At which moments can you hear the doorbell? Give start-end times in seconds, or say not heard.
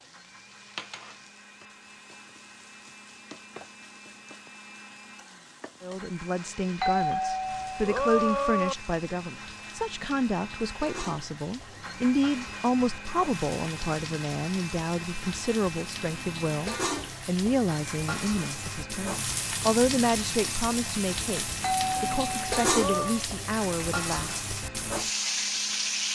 6.8-8.8, 21.6-23.2.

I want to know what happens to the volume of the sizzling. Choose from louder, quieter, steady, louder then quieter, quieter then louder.
louder.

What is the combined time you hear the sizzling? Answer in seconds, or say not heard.
26 s.